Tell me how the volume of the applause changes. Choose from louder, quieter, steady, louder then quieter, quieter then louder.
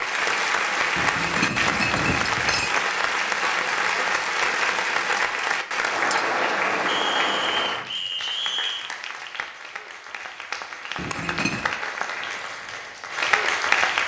quieter then louder.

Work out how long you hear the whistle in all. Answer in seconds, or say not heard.
2 s.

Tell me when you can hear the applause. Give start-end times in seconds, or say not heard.
0.0-14.0.